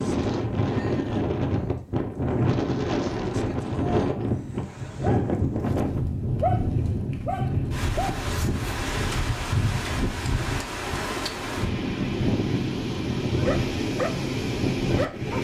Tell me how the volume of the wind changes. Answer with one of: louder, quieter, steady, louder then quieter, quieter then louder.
steady.